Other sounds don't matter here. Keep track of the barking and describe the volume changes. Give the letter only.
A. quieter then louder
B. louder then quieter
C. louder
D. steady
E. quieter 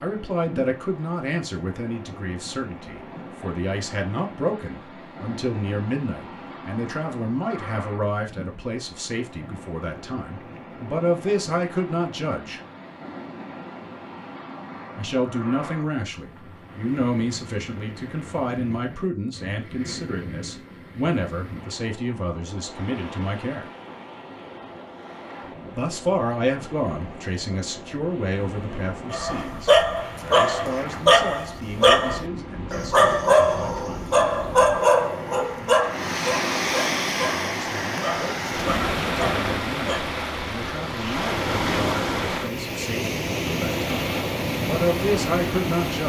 E.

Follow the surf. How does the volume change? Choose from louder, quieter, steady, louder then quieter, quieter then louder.
louder.